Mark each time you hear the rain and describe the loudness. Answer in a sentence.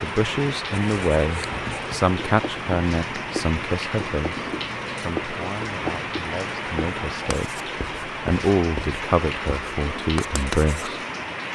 You can hear the rain from 0.0 to 11.4 s, at a steady volume.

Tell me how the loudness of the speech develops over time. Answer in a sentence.
The loudness of the speech goes down, then up.